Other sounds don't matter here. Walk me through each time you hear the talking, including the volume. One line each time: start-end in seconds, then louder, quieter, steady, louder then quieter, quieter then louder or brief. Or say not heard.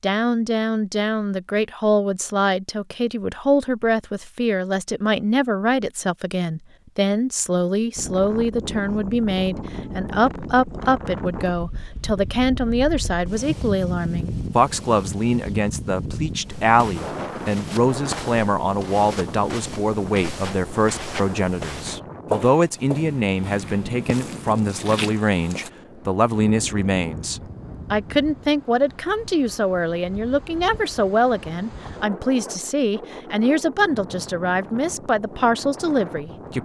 0.0-36.6 steady.